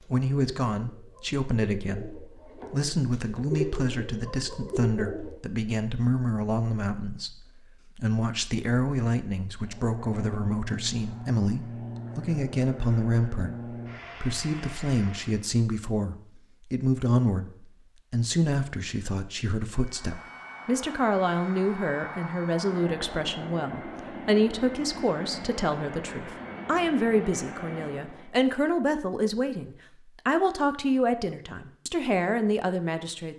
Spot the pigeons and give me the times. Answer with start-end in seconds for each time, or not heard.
0.0-5.3.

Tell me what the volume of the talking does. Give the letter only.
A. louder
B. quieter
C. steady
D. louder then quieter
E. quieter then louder
C.